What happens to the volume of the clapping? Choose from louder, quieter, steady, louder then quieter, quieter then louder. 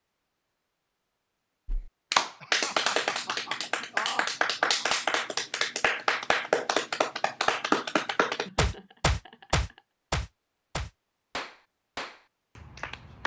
quieter.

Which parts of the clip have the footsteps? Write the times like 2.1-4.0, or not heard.
not heard.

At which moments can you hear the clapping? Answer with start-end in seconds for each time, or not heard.
1.6-13.2.